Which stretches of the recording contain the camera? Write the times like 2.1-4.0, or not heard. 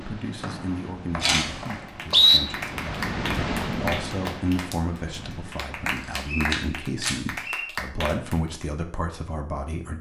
1.2-1.8, 6.0-7.2.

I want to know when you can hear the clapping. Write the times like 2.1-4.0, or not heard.
1.6-8.7.